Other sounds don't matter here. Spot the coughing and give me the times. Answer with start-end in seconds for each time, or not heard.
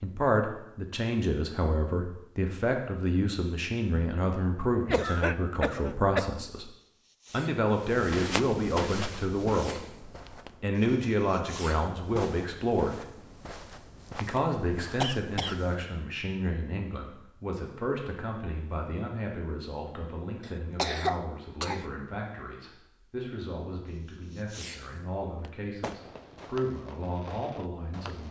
4.8-6.3, 15.0-15.6, 20.4-21.9.